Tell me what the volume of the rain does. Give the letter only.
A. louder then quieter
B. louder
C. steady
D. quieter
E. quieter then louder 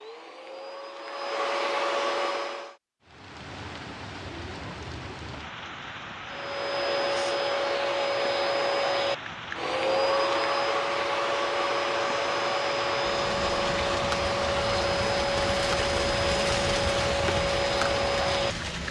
B.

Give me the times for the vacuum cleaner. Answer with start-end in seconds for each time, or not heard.
0.0-2.8, 6.2-18.8.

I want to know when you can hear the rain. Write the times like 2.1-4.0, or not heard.
3.0-18.8.